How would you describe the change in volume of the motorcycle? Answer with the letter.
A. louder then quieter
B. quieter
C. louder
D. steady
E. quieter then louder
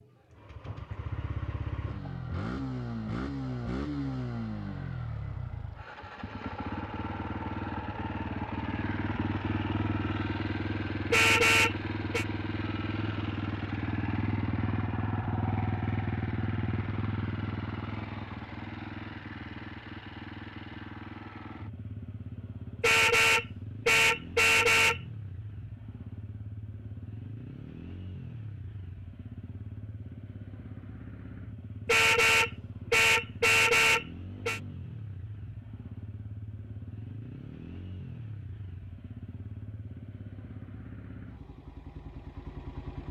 B.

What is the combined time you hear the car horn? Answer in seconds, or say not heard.
6 s.